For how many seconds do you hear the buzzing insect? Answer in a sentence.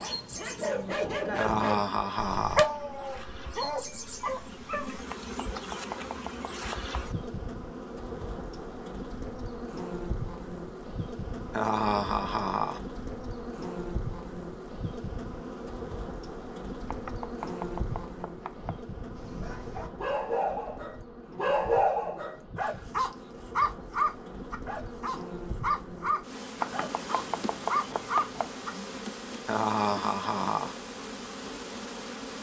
You can hear the buzzing insect for 32 seconds altogether.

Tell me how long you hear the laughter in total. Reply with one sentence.
The laughter can be heard for 4 seconds in total.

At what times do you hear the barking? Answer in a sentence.
The barking can be heard from 0.0 to 5.0 s and from 19.1 to 28.7 s.